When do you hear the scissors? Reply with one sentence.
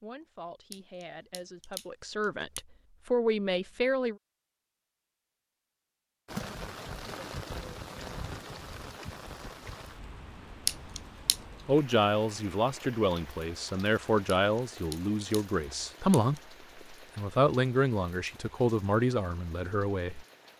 The scissors can be heard from 0.7 to 2.6 s, from 10.7 to 11.4 s and from 14.2 to 16.4 s.